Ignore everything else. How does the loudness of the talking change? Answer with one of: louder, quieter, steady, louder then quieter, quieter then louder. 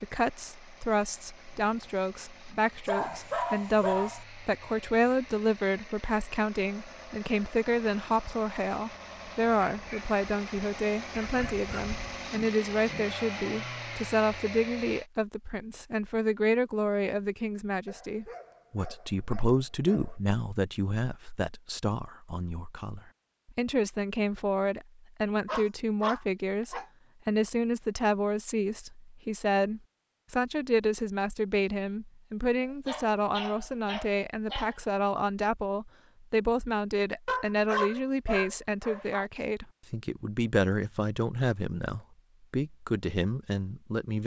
steady.